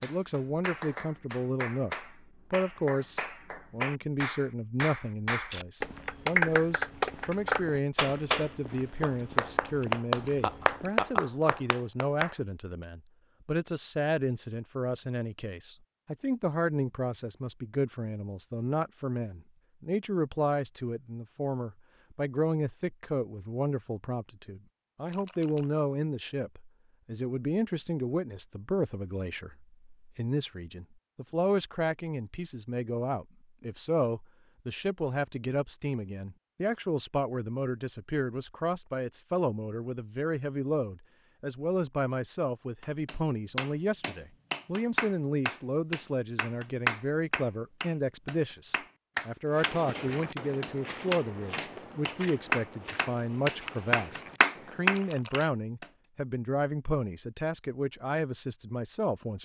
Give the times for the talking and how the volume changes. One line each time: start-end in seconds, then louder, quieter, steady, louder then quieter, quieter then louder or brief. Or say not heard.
0.0-59.4 steady.